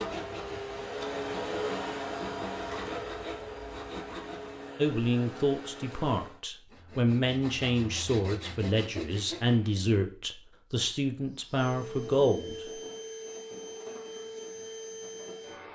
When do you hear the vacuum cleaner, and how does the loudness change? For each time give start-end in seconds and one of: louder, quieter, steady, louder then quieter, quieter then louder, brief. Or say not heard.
0.0-6.4 quieter
11.3-15.6 steady.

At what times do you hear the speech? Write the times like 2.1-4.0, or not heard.
4.8-12.7.